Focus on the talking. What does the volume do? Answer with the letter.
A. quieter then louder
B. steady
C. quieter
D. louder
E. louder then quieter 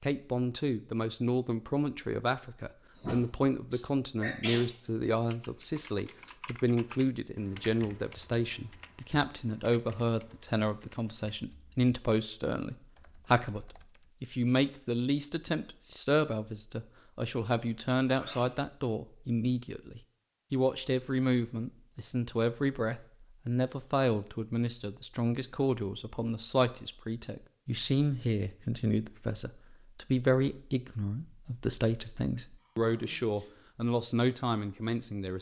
B.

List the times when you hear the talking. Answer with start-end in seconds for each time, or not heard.
0.0-35.3.